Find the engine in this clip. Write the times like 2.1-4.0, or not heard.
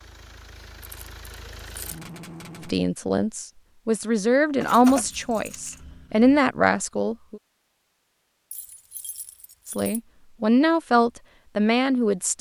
0.0-2.8.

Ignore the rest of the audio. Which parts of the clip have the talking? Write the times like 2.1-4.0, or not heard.
2.6-7.4, 9.7-12.3.